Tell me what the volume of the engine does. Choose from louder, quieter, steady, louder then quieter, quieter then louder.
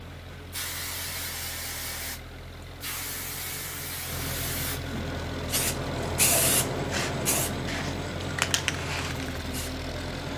louder.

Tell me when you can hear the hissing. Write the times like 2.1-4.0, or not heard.
0.0-10.3.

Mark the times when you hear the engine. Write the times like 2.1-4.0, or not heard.
0.0-10.3.